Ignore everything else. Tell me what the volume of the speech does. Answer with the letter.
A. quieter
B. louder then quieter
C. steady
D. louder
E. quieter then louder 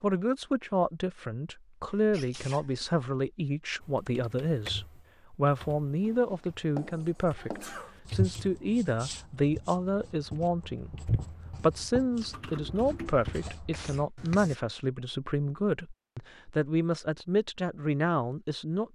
C.